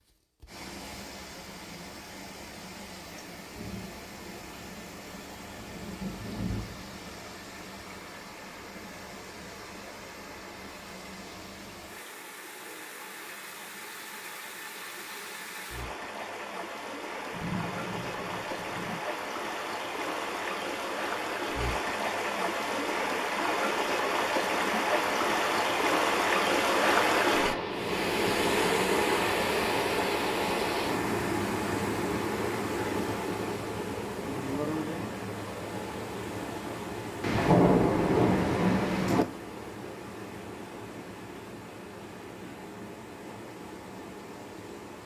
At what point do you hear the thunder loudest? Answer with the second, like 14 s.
38 s.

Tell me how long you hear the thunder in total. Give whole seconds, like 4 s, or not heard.
7 s.